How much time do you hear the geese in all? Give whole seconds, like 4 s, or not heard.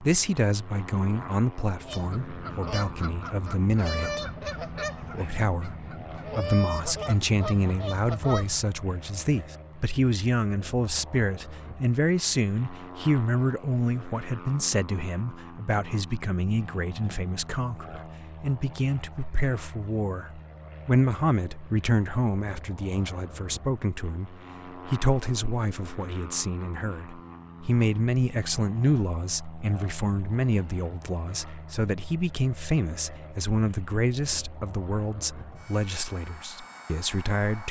7 s.